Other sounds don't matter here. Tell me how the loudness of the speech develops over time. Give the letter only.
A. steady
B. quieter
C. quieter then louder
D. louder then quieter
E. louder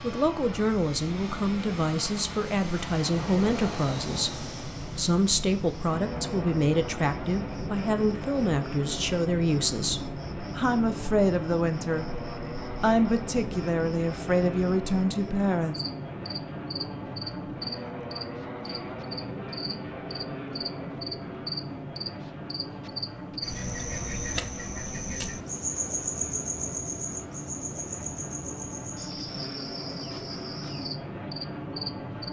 A.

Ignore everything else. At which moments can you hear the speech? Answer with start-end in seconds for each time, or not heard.
0.0-15.8.